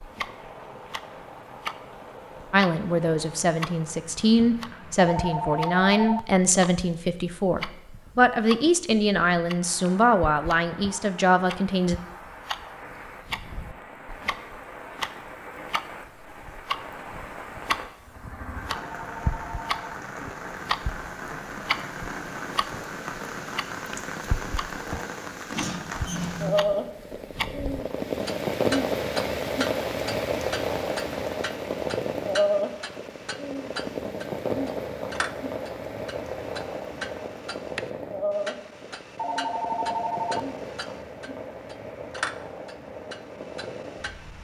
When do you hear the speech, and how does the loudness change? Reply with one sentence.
The speech can be heard from 2.5 to 11.9 s, at a steady volume.